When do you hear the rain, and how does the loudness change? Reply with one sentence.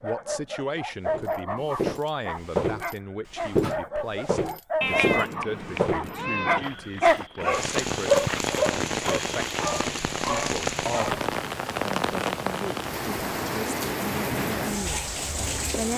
The rain can be heard from 7.5 to 15.9 s, at a steady volume.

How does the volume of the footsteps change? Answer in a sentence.
The loudness of the footsteps goes down, then up.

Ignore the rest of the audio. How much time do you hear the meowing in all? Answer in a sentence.
You can hear the meowing for 2 seconds altogether.